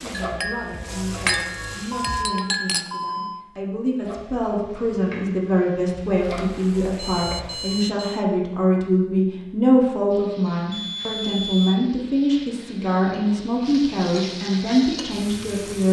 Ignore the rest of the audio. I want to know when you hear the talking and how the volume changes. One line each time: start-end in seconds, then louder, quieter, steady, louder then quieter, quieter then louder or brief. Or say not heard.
0.0-15.8 louder.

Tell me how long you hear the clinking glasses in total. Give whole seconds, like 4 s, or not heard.
3 s.